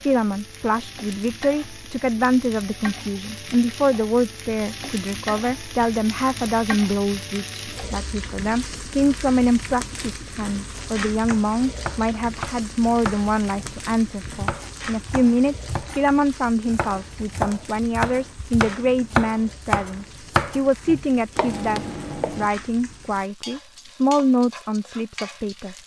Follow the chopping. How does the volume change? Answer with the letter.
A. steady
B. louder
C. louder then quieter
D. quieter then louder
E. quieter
B.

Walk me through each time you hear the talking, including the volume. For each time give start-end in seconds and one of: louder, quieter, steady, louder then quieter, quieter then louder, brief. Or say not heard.
0.0-25.8 steady.